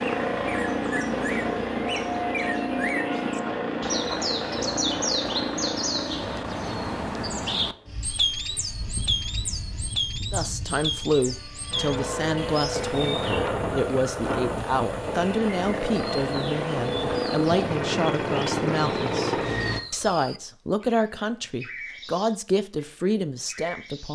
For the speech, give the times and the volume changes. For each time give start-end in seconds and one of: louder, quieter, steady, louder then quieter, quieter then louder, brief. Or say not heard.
10.3-24.1 steady.